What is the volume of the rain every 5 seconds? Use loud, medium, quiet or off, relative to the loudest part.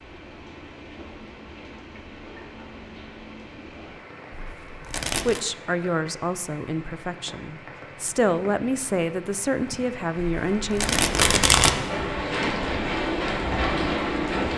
quiet, quiet, loud.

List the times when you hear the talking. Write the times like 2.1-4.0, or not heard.
4.8-11.0.